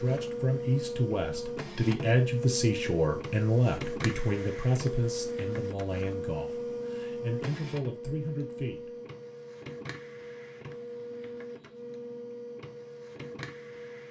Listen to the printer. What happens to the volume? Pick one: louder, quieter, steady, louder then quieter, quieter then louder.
quieter.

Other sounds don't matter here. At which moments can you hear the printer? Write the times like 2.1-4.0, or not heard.
0.0-14.0.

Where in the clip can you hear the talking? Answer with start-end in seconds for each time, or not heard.
0.0-8.9.